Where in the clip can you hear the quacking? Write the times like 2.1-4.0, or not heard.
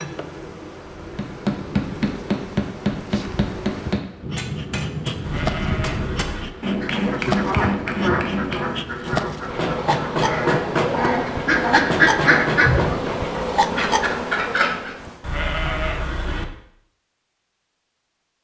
6.8-14.9.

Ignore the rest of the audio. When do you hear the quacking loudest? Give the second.
12 s.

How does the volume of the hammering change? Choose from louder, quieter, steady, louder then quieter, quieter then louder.
steady.